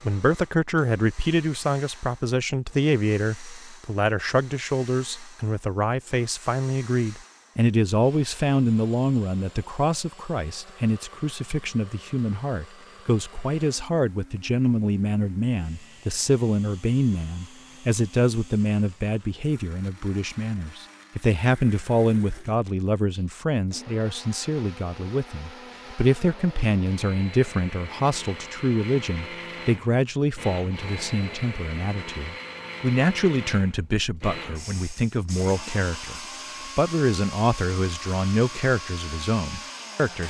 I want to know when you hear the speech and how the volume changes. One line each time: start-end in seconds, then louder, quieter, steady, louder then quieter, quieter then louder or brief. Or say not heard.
0.0-40.2 steady.